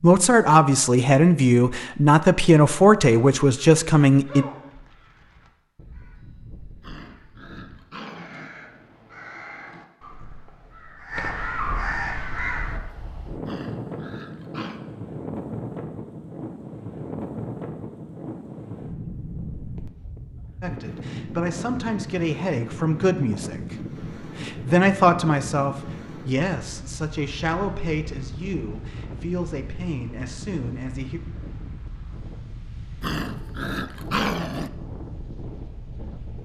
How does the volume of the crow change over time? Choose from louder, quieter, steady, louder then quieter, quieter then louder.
louder.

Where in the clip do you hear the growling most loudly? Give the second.
34 s.